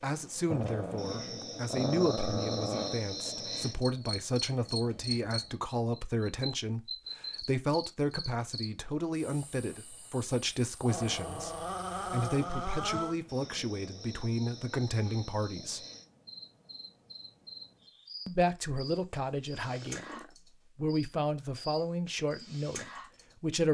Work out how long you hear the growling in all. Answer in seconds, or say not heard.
6 s.